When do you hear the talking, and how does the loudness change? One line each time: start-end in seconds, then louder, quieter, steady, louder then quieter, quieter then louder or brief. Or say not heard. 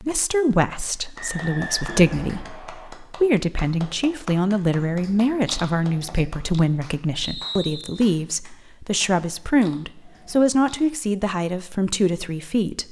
0.0-12.8 steady.